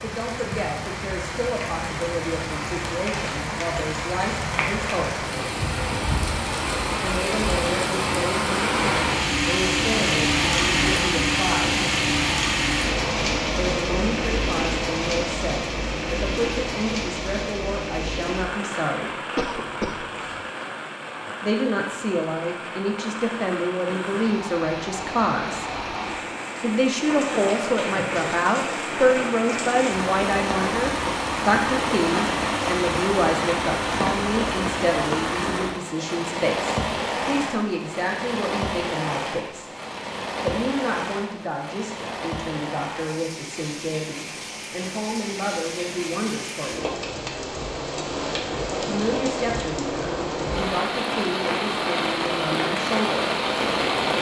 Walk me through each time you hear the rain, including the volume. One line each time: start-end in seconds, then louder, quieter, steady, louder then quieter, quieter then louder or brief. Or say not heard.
0.0-54.1 steady.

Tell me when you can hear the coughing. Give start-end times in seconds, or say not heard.
19.4-20.4.